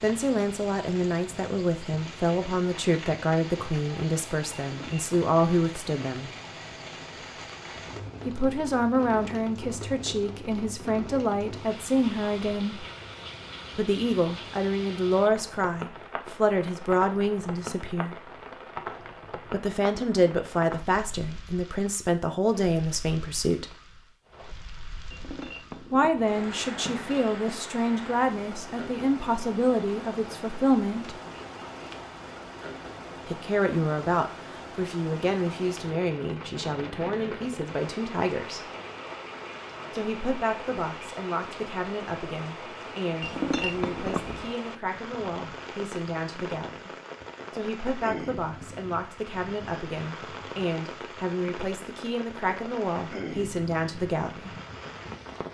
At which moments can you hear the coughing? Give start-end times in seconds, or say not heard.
not heard.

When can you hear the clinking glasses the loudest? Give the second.
44 s.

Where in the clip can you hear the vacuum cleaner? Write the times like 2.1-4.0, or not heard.
not heard.